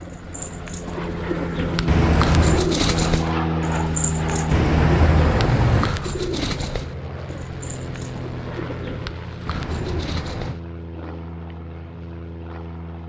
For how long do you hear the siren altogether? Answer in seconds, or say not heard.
not heard.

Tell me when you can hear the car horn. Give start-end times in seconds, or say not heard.
1.9-2.6, 4.5-6.0, 9.4-10.6.